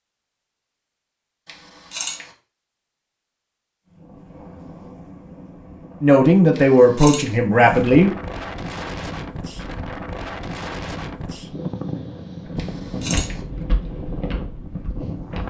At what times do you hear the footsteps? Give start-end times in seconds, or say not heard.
12.4-15.4.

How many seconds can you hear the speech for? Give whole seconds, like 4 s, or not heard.
2 s.